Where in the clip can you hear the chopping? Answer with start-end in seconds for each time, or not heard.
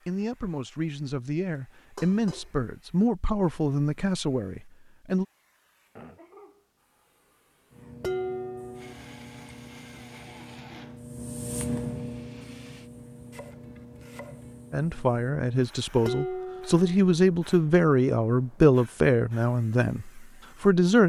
13.3-14.6.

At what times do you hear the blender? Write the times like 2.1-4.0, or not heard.
8.8-12.9.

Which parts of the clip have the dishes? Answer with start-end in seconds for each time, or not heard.
1.9-2.5, 8.0-8.9, 16.1-16.9.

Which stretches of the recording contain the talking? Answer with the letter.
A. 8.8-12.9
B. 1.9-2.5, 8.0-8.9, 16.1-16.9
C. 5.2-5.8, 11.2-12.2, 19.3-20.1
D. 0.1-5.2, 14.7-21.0
D.